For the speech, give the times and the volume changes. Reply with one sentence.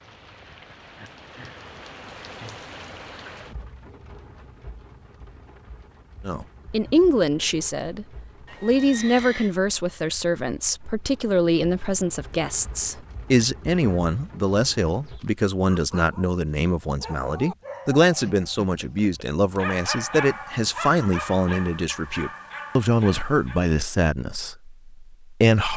You can hear the speech from 6.2 to 25.7 s, at a steady volume.